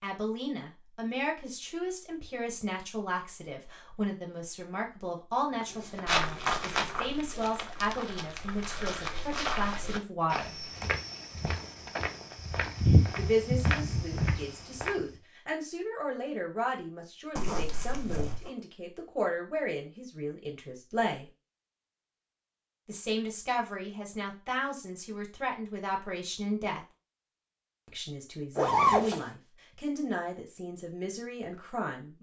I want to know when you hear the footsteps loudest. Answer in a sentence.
The volume of the footsteps peaks at 13 seconds.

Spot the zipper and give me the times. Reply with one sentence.
The zipper can be heard from 5.7 to 7.0 s, from 17.4 to 18.5 s and from 28.6 to 29.2 s.